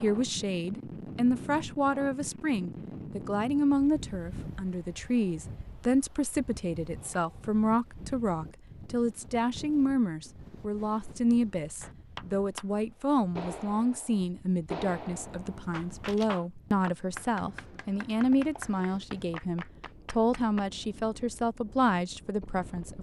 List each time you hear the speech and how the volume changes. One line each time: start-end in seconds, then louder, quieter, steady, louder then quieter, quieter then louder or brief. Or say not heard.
0.0-22.9 steady.